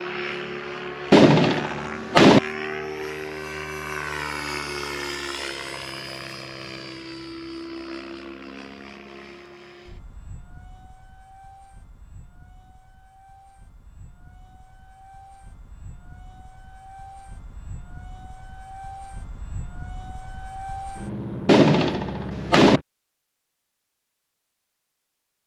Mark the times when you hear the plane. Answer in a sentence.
The plane can be heard from 0.0 to 22.9 s.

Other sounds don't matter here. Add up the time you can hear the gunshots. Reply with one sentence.
The gunshots can be heard for 3 seconds in total.